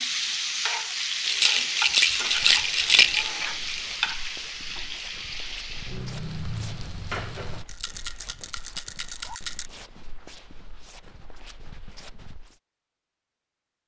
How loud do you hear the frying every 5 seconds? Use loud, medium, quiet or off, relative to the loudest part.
loud, medium, off.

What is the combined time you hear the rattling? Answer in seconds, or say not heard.
5 s.